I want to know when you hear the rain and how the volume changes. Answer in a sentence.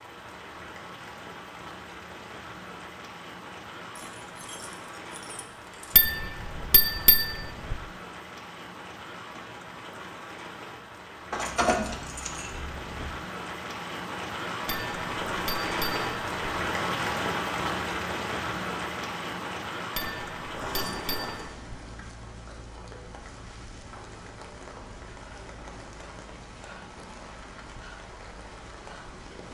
You can hear the rain from 0.0 to 29.5 s, getting louder then quieter.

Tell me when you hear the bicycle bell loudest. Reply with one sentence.
The loudest moment of the bicycle bell is at 7 seconds.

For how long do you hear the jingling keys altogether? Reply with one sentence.
The jingling keys can be heard for 5 seconds in total.